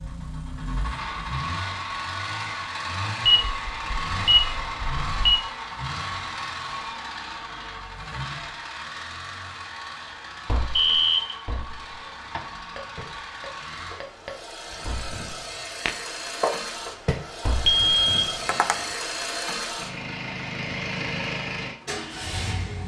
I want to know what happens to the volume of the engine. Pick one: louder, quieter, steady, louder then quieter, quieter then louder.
quieter then louder.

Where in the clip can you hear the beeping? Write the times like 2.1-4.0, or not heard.
3.2-5.3, 10.8-11.3, 17.6-18.4.